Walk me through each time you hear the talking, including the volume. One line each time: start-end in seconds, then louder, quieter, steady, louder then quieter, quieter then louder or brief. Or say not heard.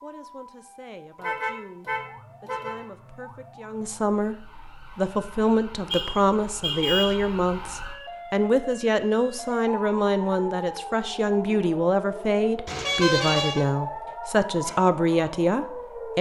0.0-16.1 louder.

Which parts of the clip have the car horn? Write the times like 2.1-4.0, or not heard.
1.1-2.9, 5.9-7.2, 12.7-13.7.